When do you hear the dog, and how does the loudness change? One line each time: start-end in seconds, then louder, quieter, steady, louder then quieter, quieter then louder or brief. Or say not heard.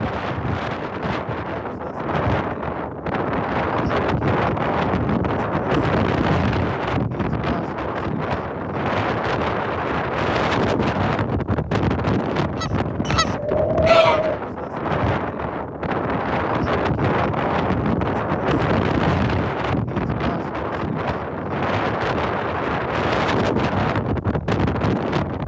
not heard.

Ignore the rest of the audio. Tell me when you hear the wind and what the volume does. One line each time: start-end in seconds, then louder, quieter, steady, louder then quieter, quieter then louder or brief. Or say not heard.
0.0-25.4 steady.